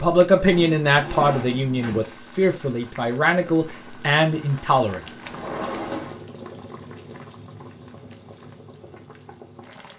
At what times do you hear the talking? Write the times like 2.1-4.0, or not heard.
0.0-5.0.